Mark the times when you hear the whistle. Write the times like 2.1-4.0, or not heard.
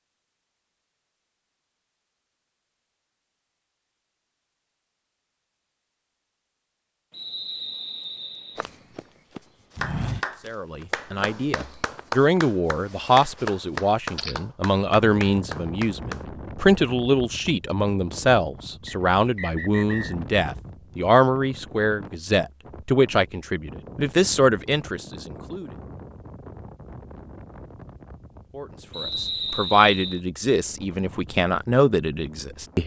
7.1-8.7, 18.9-20.1, 28.9-30.2.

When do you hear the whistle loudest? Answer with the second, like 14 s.
29 s.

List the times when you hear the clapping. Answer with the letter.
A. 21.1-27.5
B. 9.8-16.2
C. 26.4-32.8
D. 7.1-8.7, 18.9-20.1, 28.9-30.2
B.